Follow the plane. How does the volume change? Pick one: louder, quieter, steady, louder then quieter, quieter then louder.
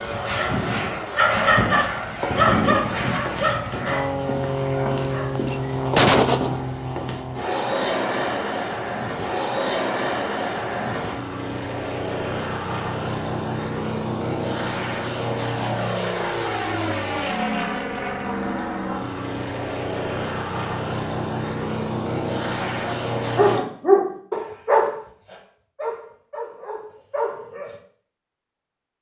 steady.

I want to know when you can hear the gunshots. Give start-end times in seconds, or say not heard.
5.0-6.5.